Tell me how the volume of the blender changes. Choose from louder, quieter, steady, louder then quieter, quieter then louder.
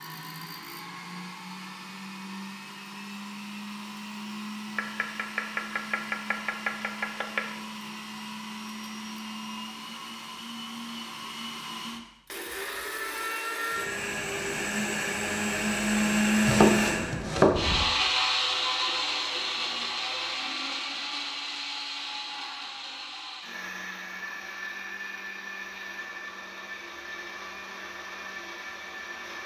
louder then quieter.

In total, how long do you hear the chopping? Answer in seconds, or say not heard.
4 s.